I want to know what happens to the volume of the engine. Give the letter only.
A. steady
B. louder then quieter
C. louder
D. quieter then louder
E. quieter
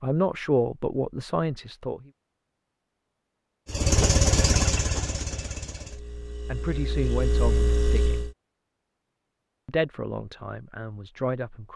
D.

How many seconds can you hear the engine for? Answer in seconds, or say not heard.
5 s.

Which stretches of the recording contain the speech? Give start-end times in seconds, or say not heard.
0.0-2.1, 5.7-8.2, 9.7-11.7.